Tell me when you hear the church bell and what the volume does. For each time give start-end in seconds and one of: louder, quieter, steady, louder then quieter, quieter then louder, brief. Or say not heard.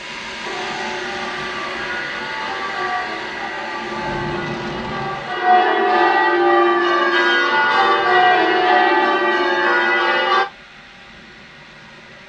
0.4-10.4 louder.